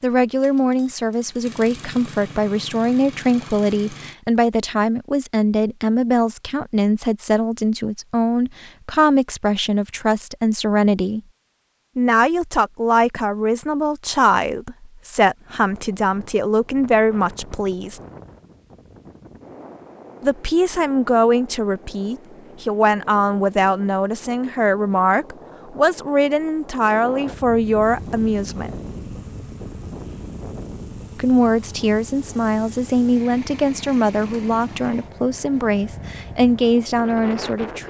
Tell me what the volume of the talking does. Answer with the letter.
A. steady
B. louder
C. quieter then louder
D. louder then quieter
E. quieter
A.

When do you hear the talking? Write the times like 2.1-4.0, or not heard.
0.0-11.2, 11.9-18.0, 20.2-28.7, 31.1-37.8.